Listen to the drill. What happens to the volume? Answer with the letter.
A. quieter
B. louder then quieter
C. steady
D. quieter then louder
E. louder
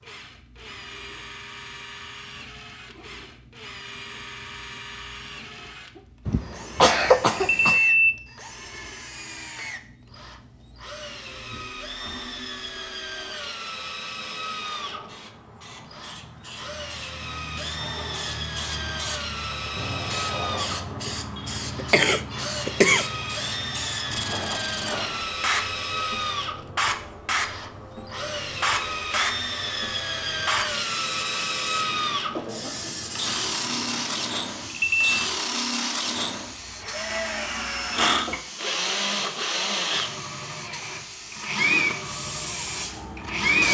E.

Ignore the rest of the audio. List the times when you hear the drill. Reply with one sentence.
The drill can be heard from 0.0 to 43.7 s.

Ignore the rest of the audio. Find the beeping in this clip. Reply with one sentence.
The beeping can be heard from 7.3 to 8.2 s and from 34.7 to 35.1 s.